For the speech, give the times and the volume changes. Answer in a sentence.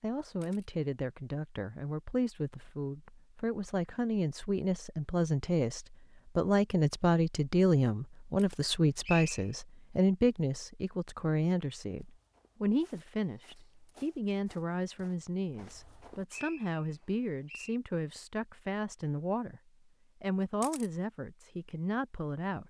The speech can be heard from 0.0 to 19.6 s, getting louder then quieter; and briefly from 20.2 to 22.6 s.